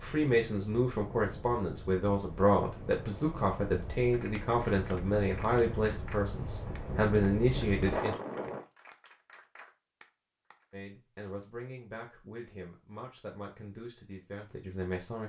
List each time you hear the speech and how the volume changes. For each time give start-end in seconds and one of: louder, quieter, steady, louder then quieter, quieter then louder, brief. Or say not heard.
0.0-8.2 steady
10.7-15.2 steady.